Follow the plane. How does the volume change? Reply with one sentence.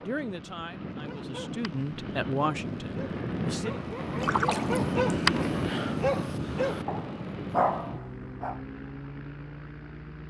The volume of the plane goes up, then down.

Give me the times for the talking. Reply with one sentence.
You can hear the talking from 0.1 to 3.8 s.